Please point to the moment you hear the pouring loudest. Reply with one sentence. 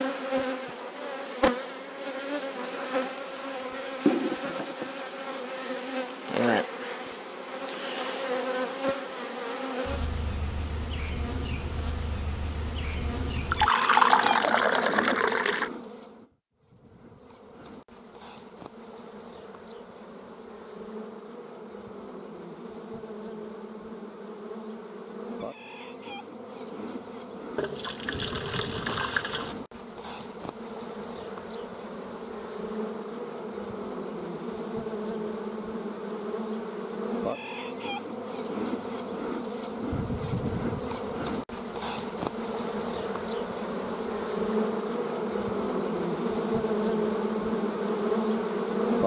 The volume of the pouring peaks at 14 seconds.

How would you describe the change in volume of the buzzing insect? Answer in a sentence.
The loudness of the buzzing insect goes down, then up.